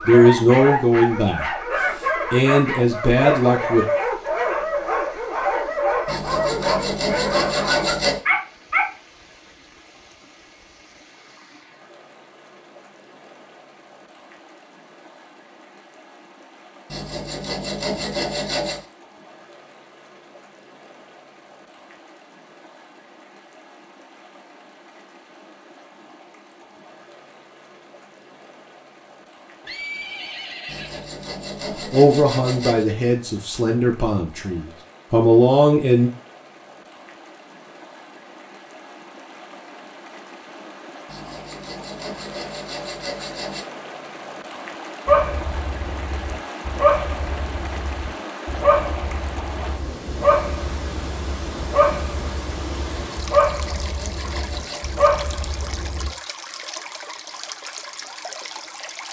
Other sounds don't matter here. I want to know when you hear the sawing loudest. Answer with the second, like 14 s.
8 s.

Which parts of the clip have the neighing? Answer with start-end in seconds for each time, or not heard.
29.6-31.1.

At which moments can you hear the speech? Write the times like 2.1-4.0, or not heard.
0.1-3.9, 31.9-36.1.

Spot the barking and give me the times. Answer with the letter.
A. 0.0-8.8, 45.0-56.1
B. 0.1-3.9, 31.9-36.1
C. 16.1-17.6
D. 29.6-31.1
A.